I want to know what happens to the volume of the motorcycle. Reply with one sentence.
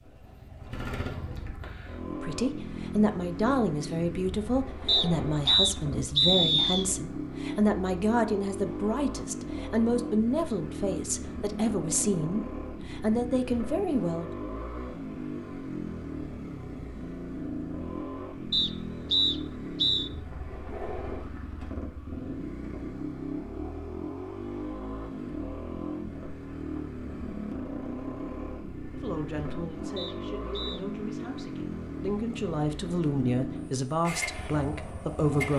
The loudness of the motorcycle stays about the same.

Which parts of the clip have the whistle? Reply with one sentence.
The whistle can be heard from 4.8 to 6.8 s, from 18.5 to 20.1 s and from 29.9 to 30.8 s.